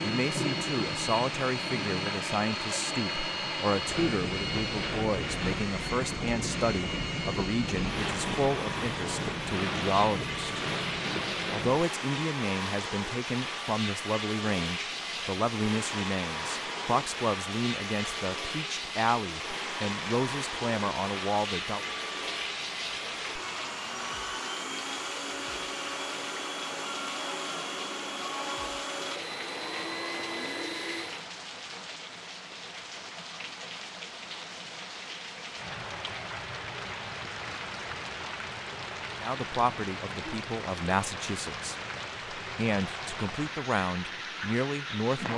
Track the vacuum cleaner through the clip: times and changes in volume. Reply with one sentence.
The vacuum cleaner can be heard from 0.0 to 31.3 s, at a steady volume.